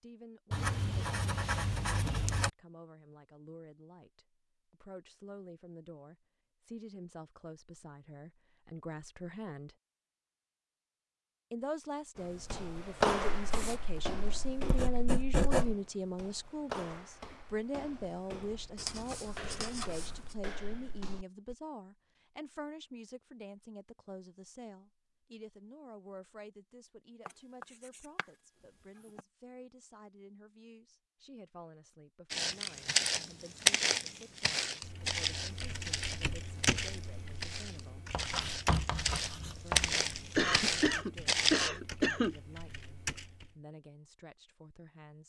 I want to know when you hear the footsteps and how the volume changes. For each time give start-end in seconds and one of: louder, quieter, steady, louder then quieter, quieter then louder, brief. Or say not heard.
12.2-21.6 quieter
32.3-41.7 quieter then louder.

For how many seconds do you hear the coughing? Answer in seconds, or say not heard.
2 s.